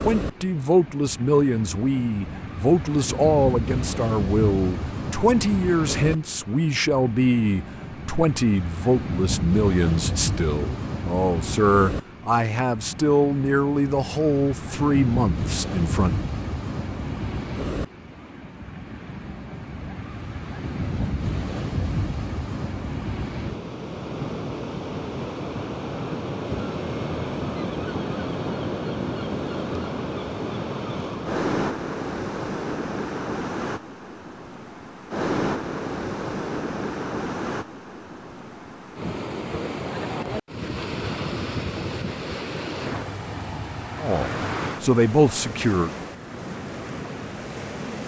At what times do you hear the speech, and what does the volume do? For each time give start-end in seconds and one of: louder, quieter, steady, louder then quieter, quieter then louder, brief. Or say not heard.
0.0-16.1 steady
44.0-45.9 brief.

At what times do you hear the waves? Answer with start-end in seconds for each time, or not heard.
0.0-48.0.